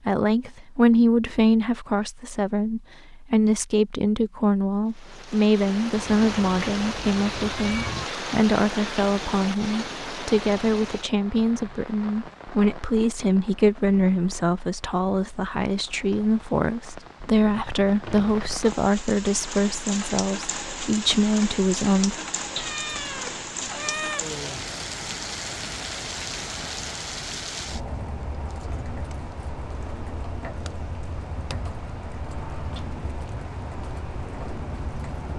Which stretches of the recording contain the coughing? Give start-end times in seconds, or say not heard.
not heard.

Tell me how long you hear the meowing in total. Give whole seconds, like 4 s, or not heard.
4 s.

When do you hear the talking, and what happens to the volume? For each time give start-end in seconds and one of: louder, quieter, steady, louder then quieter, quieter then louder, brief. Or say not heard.
0.1-22.2 steady.